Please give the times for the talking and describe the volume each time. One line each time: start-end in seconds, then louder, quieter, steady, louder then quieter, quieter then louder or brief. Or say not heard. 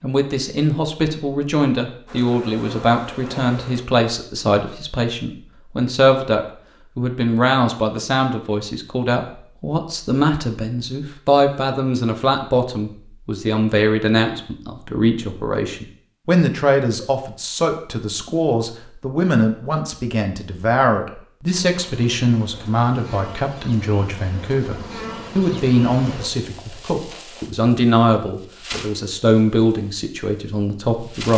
0.0-31.3 steady.